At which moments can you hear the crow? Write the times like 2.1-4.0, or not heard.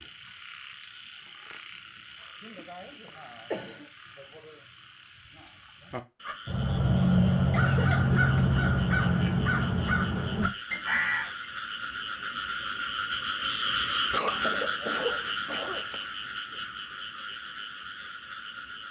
6.2-11.4.